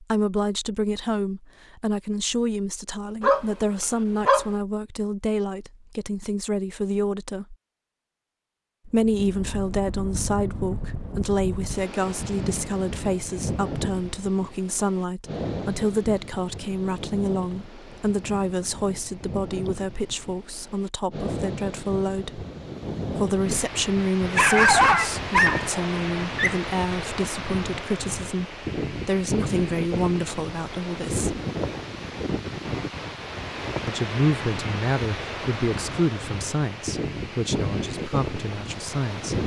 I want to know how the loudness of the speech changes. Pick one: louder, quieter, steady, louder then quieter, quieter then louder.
steady.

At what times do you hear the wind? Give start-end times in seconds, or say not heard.
8.9-39.4.